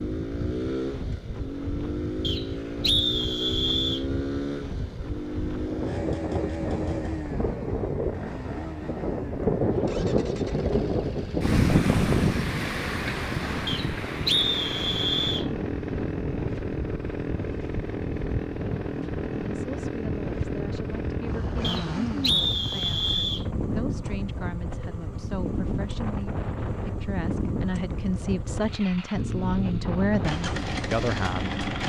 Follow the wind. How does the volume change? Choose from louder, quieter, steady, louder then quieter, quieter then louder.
louder then quieter.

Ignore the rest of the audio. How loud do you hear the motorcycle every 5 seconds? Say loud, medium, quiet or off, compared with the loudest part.
loud, loud, medium, loud, loud, loud, loud.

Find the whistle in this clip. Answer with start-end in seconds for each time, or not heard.
2.2-4.0, 13.7-15.4, 21.6-23.4.